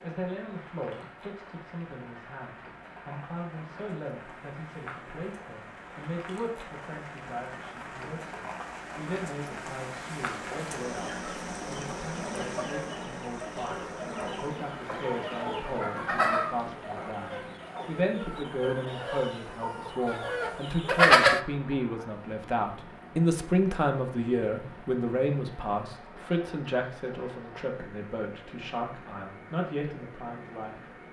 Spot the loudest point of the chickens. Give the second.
21 s.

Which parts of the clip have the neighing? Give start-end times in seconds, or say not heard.
not heard.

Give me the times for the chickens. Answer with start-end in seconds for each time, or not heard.
10.9-21.4.